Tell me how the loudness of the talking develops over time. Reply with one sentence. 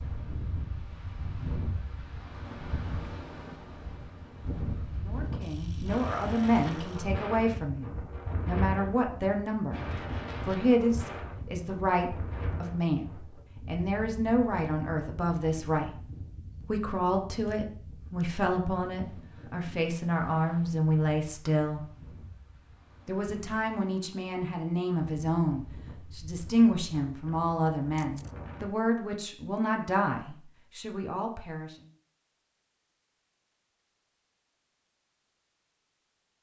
The loudness of the talking stays about the same.